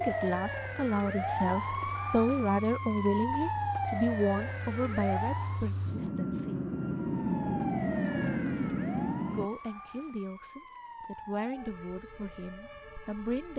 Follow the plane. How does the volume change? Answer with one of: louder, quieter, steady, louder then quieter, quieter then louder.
louder.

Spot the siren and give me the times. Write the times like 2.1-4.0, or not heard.
0.0-5.7, 6.9-13.5.